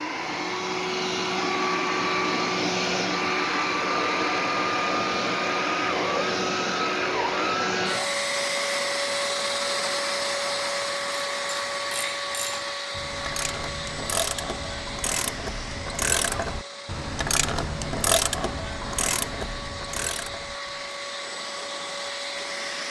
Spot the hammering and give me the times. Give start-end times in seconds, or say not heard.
not heard.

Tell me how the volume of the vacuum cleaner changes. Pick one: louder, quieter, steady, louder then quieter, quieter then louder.
quieter.